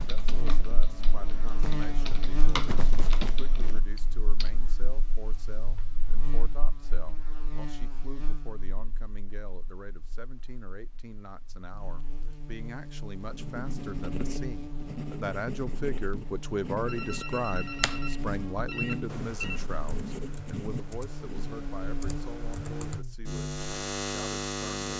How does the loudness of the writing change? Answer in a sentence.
The loudness of the writing stays about the same.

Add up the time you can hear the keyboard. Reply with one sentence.
You can hear the keyboard for 10 seconds altogether.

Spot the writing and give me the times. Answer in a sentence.
The writing can be heard from 13.2 to 21.6 s.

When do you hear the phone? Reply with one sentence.
The phone can be heard from 16.9 to 19.6 s.